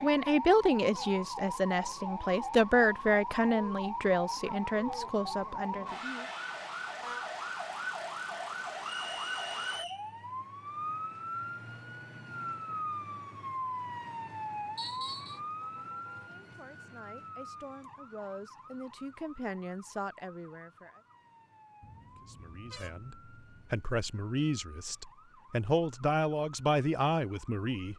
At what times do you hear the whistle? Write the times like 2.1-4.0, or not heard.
8.9-10.1, 14.8-15.4.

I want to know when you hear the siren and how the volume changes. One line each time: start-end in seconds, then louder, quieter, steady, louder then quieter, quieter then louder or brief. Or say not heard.
0.0-27.9 quieter.